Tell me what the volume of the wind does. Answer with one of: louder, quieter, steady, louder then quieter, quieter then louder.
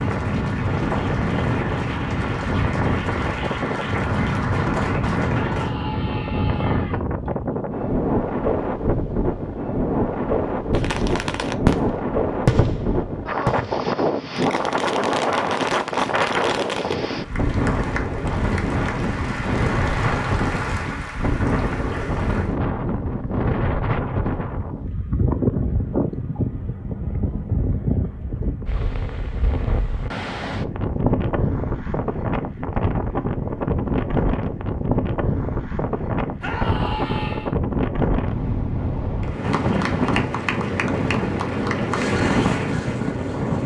steady.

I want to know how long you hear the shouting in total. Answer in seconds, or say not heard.
3 s.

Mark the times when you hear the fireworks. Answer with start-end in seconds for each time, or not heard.
10.8-16.9.